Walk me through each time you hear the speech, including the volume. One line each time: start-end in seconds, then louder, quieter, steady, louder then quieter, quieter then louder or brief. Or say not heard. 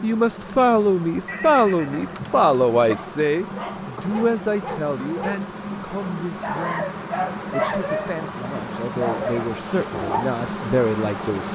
0.0-11.5 quieter then louder.